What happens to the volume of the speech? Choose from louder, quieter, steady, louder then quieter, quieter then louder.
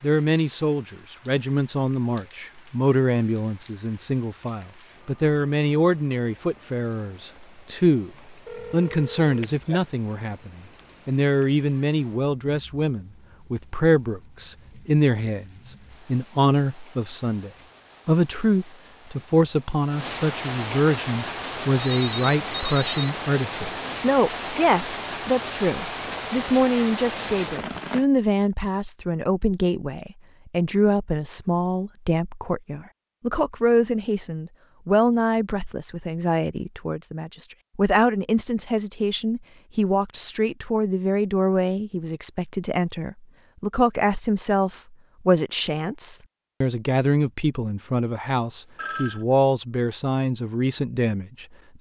steady.